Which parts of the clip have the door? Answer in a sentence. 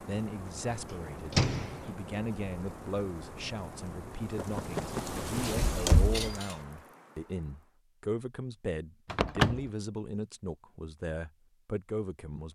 You can hear the door from 1.3 to 1.8 s, from 5.0 to 6.5 s and from 9.1 to 9.6 s.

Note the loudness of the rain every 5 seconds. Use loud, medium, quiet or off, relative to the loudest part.
loud, loud, off.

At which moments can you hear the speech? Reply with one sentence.
The speech can be heard from 0.0 to 12.4 s.